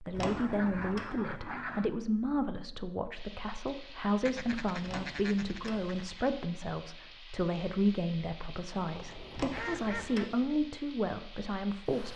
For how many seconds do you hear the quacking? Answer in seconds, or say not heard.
5 s.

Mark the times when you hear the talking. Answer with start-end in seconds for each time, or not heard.
0.0-12.1.